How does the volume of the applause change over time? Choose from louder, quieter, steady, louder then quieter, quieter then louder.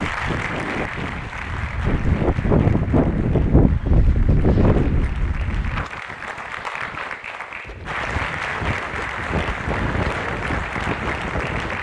quieter then louder.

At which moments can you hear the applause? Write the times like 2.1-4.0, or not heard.
0.0-11.7.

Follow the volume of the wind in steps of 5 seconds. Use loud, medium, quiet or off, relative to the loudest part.
loud, medium, medium.